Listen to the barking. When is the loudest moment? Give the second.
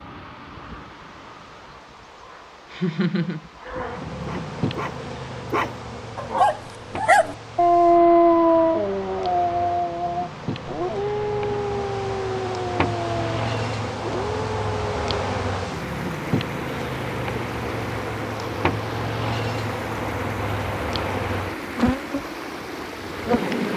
8 s.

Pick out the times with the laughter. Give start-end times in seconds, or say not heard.
2.7-3.5.